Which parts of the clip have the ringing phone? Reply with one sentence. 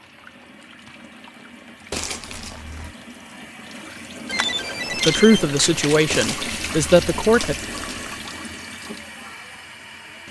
The ringing phone can be heard from 4.2 to 6.0 s.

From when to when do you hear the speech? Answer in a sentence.
You can hear the speech from 5.0 to 7.5 s.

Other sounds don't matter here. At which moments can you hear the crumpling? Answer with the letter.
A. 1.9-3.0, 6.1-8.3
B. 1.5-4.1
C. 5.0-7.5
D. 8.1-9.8
A.